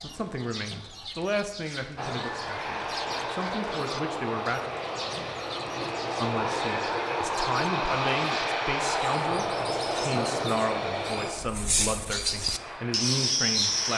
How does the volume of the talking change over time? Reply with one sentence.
The volume of the talking stays about the same.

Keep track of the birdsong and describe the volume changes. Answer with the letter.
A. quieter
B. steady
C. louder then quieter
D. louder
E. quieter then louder
D.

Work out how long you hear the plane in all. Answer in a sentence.
The plane can be heard for 12 seconds in total.